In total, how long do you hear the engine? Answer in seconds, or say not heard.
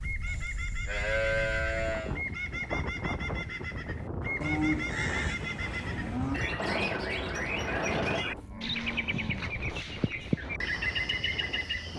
2 s.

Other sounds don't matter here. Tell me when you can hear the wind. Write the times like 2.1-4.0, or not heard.
0.0-11.9.